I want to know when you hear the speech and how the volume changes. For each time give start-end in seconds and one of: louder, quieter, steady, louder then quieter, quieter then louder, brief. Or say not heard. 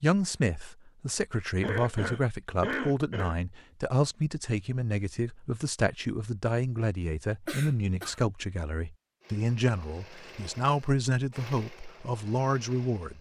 0.0-13.1 steady.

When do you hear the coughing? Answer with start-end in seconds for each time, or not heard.
1.6-3.4, 7.5-8.2.